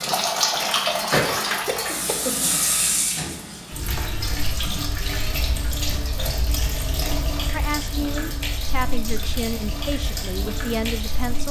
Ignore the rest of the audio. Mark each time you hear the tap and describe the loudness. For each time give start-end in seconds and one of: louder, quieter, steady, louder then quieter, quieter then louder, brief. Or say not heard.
0.0-11.4 quieter.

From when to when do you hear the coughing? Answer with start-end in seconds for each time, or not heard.
1.6-2.5.